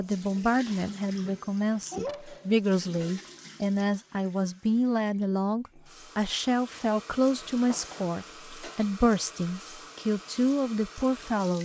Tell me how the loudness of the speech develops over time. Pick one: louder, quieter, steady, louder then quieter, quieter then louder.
steady.